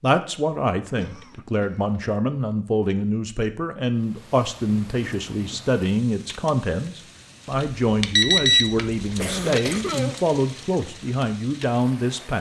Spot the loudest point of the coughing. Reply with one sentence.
The loudest moment of the coughing is at 10 seconds.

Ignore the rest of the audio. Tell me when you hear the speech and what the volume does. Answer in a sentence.
You can hear the speech from 0.0 to 12.3 s, at a steady volume.